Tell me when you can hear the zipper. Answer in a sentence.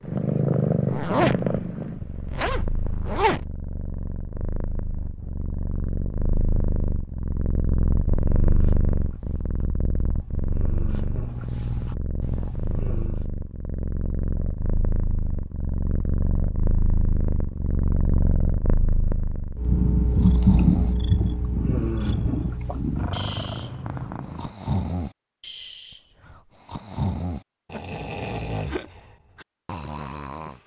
You can hear the zipper from 0.8 to 3.5 s.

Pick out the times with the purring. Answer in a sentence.
You can hear the purring from 0.0 to 24.6 s.